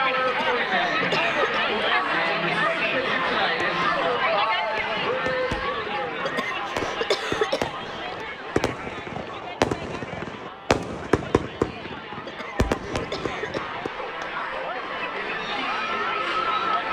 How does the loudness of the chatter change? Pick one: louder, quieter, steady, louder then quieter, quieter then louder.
quieter then louder.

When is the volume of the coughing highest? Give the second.
7 s.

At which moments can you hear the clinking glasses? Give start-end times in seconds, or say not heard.
not heard.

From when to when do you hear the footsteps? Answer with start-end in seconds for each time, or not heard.
not heard.